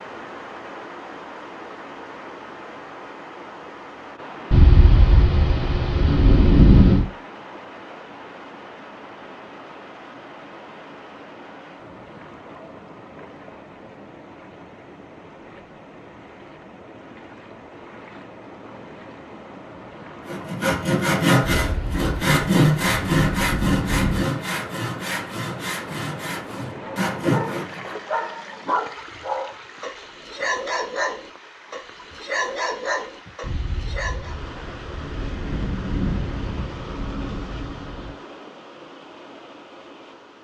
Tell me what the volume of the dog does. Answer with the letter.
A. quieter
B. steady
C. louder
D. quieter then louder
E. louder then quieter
B.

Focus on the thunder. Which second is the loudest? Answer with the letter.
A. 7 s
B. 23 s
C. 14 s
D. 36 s
A.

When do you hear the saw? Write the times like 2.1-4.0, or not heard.
20.2-27.9.